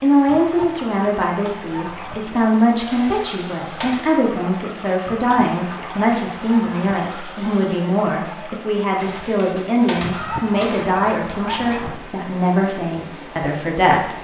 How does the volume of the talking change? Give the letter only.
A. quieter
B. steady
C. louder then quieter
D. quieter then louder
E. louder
B.